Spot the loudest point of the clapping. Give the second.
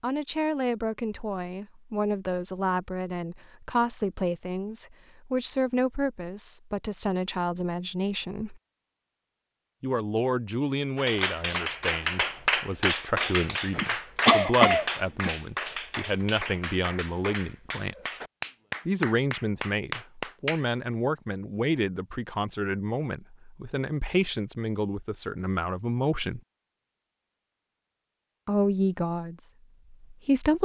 12 s.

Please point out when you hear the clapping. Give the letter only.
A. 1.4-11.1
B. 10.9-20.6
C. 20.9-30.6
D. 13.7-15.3
B.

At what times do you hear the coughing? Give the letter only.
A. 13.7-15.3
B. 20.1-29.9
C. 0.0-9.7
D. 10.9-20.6
A.